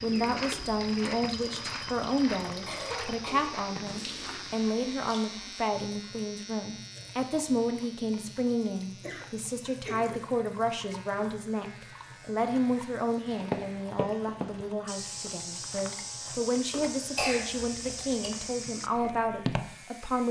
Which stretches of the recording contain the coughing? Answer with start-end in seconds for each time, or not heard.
2.6-3.5, 9.0-10.2, 16.7-18.3.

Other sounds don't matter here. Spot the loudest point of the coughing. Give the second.
17 s.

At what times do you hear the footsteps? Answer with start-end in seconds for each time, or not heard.
0.0-4.8, 13.2-19.8.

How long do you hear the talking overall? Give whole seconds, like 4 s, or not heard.
20 s.